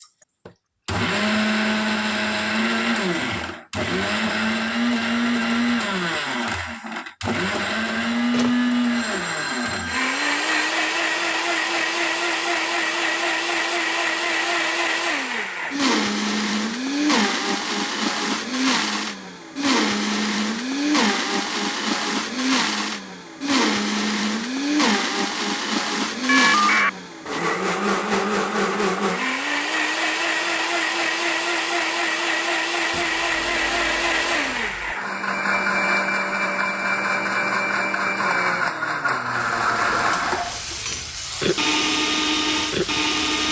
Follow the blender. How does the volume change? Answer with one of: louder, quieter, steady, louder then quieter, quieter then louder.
steady.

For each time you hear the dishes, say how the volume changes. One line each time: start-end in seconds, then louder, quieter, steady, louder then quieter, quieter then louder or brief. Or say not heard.
not heard.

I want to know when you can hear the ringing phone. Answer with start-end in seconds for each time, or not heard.
8.3-10.5, 26.2-26.9, 32.9-35.0.